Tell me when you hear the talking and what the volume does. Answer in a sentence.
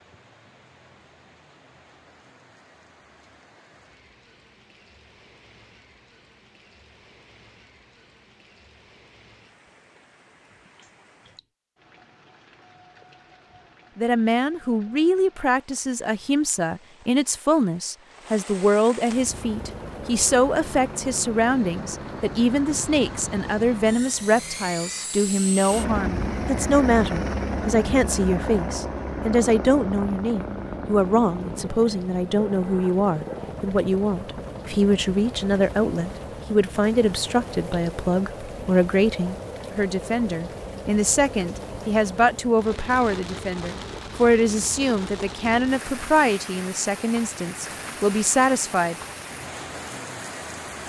You can hear the talking from 13.9 to 49.0 s, at a steady volume.